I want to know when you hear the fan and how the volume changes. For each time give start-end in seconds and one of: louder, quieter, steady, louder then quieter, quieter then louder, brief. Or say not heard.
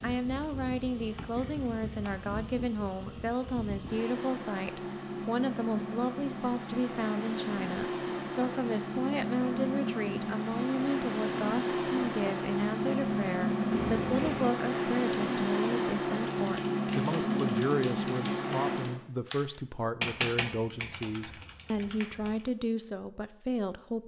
0.0-19.0 louder.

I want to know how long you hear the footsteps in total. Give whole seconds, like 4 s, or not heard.
not heard.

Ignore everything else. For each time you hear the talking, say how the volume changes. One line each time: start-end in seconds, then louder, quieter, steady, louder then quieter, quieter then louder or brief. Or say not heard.
0.0-24.0 steady.